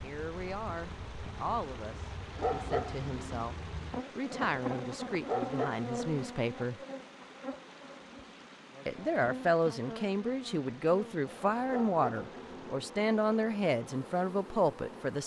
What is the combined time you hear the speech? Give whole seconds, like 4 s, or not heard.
13 s.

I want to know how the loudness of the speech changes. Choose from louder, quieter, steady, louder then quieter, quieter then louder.
louder.